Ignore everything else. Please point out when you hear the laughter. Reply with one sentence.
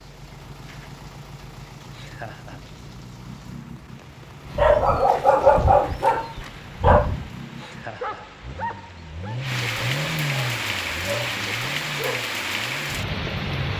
The laughter can be heard from 1.9 to 2.6 s and from 7.5 to 8.2 s.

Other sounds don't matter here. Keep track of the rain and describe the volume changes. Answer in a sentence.
The volume of the rain goes up.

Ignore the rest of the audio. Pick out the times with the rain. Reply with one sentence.
You can hear the rain from 0.0 to 13.7 s.